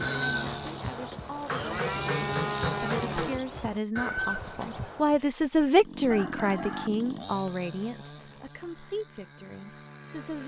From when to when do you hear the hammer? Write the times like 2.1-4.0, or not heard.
1.4-3.4.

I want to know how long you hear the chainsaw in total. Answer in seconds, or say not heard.
8 s.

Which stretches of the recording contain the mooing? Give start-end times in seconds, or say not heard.
0.0-5.2.